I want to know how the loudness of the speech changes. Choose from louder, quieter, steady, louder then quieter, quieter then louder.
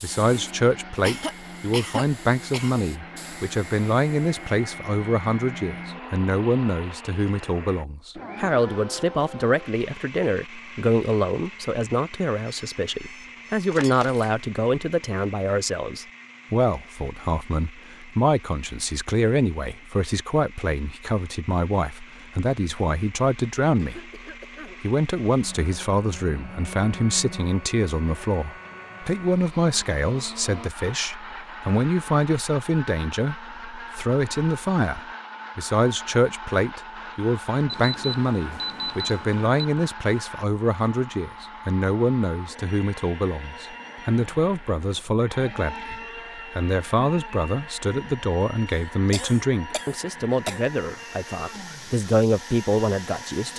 steady.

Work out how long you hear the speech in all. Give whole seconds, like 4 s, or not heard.
53 s.